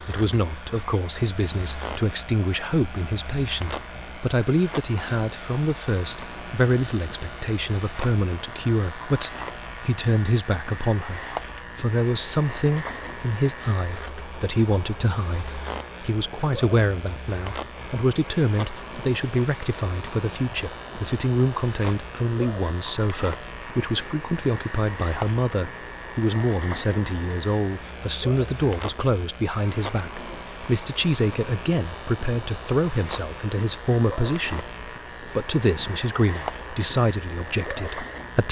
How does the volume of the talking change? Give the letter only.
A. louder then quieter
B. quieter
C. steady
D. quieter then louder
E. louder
C.